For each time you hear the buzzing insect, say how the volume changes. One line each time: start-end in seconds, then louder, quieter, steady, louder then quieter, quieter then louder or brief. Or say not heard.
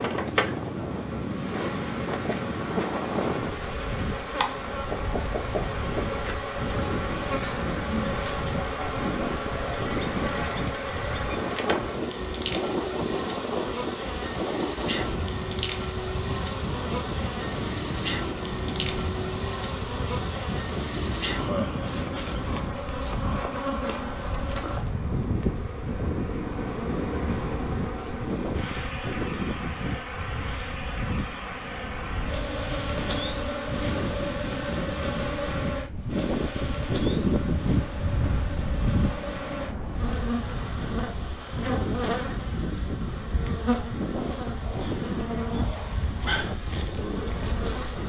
0.0-48.0 steady.